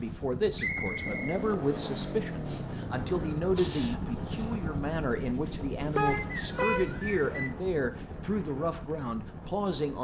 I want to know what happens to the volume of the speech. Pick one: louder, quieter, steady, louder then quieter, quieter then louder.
steady.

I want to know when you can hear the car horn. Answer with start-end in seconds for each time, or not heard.
6.0-7.0.